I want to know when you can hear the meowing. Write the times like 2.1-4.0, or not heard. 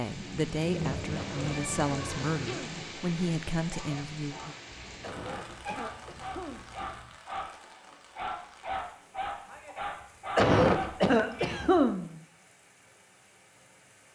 0.6-2.6, 4.7-7.2, 10.8-11.9.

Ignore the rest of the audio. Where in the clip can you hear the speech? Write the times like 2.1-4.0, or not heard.
0.0-4.5.